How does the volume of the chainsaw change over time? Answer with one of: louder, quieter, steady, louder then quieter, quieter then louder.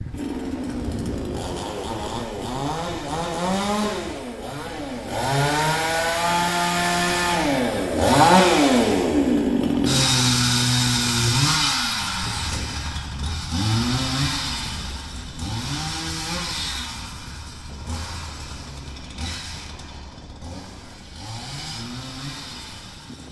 louder then quieter.